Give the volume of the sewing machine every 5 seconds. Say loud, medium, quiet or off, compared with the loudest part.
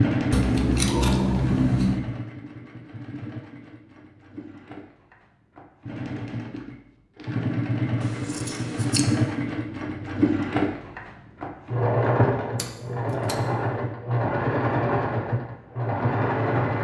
medium, loud, loud, loud.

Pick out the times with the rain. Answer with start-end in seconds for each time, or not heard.
not heard.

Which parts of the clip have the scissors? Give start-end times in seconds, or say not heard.
0.3-2.0, 8.0-9.1, 12.6-13.4.